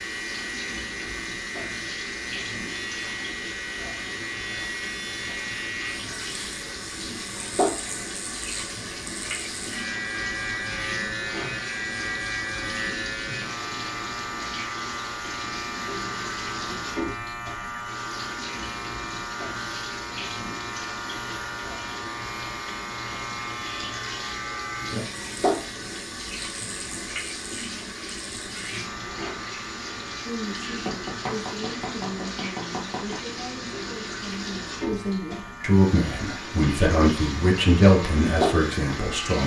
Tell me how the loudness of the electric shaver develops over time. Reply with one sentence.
The volume of the electric shaver goes down.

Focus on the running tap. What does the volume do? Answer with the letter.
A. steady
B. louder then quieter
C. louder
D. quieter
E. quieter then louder
A.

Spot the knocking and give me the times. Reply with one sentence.
The knocking can be heard from 30.8 to 33.2 s.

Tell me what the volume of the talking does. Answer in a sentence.
The loudness of the talking goes up.